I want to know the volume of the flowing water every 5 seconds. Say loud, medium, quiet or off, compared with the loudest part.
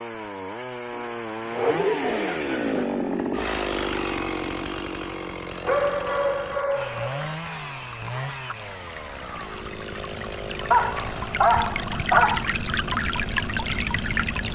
off, quiet, loud.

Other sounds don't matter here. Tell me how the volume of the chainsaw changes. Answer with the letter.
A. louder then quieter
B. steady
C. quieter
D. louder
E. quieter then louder
C.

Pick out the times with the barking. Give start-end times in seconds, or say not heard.
0.9-2.9, 5.7-7.3, 10.7-12.4.